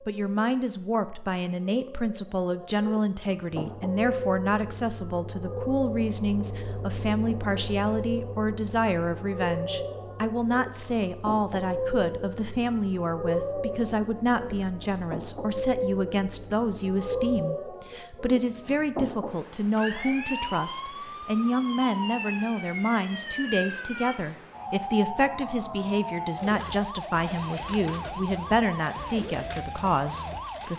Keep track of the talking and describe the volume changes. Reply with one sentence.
The loudness of the talking stays about the same.